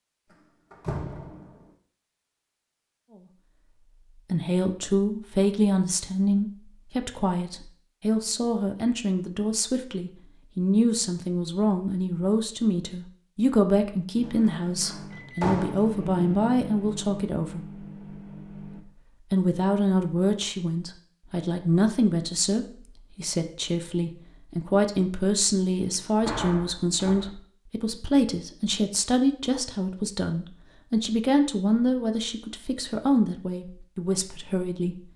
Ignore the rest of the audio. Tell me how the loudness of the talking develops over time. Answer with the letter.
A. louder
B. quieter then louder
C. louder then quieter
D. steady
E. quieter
D.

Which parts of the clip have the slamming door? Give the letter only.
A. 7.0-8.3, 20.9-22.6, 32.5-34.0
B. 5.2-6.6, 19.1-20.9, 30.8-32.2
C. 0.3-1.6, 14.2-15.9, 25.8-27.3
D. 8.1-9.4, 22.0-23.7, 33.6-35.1
C.